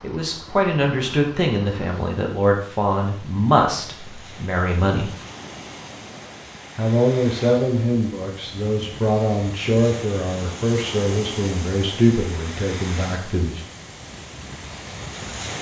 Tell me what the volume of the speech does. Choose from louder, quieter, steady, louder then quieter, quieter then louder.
steady.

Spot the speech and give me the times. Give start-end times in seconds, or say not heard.
0.0-5.1, 6.8-13.6.